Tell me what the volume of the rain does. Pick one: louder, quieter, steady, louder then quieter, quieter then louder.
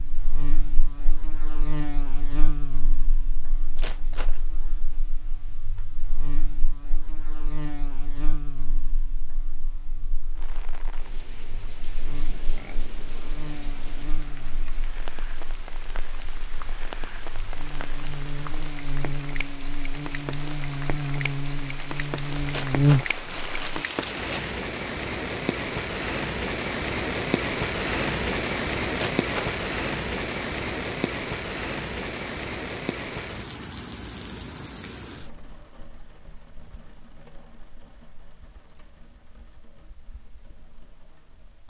louder then quieter.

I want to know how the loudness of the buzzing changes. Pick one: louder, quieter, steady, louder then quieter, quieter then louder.
quieter then louder.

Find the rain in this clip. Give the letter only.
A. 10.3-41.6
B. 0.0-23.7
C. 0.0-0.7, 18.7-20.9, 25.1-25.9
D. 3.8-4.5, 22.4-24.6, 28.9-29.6
A.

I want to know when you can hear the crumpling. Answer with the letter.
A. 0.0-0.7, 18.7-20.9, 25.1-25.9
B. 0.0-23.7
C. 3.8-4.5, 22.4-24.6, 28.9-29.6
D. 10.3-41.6
C.